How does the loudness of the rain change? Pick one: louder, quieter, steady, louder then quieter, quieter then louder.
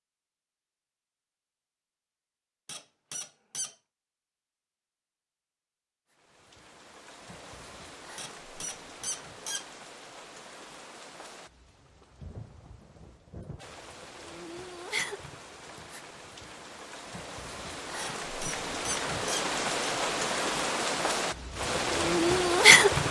louder.